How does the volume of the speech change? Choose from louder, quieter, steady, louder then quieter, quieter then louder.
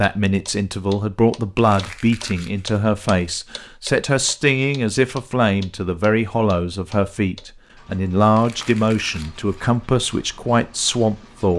steady.